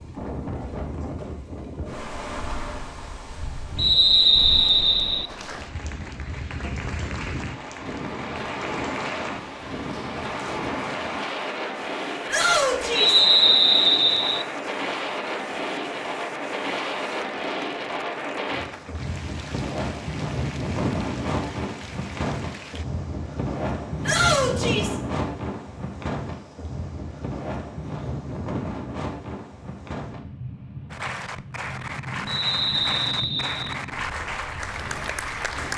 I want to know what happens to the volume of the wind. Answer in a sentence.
The loudness of the wind goes up, then down.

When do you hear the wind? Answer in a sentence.
The wind can be heard from 0.0 to 35.7 s.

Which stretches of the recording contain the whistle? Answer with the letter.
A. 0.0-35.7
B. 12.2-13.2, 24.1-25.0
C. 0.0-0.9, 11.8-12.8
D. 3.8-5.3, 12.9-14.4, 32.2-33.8
D.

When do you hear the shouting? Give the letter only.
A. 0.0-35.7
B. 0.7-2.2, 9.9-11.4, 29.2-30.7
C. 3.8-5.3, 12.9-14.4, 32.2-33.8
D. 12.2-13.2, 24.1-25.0
D.